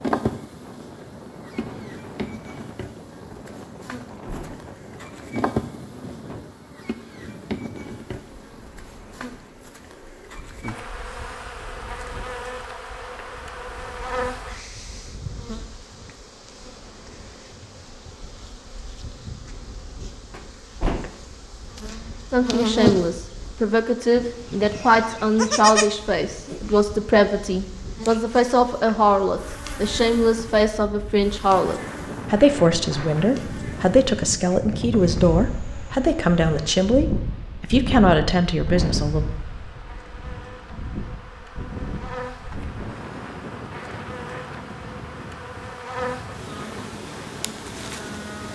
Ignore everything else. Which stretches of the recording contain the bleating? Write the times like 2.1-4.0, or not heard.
24.1-26.8.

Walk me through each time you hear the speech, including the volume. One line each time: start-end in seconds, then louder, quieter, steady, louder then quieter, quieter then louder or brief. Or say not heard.
22.3-39.2 steady.